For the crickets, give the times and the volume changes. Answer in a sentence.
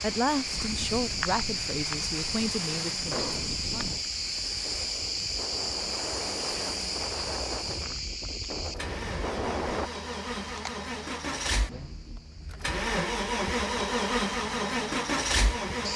You can hear the crickets from 0.0 to 15.9 s, getting quieter.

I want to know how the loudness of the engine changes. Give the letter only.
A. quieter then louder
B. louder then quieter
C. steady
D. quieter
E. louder
E.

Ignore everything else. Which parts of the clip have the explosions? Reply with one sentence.
You can hear the explosions from 3.1 to 3.5 s.